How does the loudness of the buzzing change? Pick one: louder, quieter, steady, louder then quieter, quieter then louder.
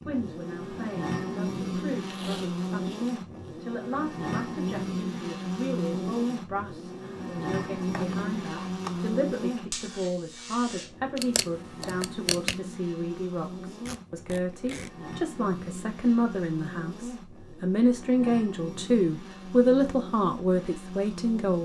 quieter.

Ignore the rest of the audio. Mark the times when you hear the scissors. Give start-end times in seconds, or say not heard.
7.6-9.1, 11.2-12.6.